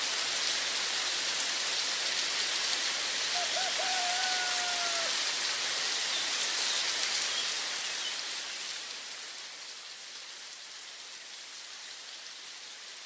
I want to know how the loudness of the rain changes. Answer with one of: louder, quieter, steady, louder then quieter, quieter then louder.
quieter.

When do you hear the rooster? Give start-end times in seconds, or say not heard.
3.5-5.2.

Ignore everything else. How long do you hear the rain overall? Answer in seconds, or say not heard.
13 s.